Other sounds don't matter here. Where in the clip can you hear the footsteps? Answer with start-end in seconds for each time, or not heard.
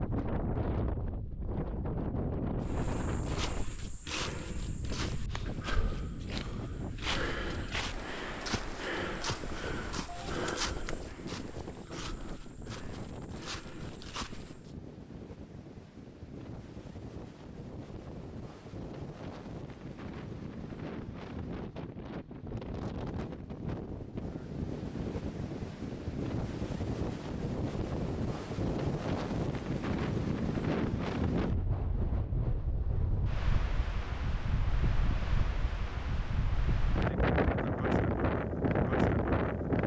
2.6-14.7.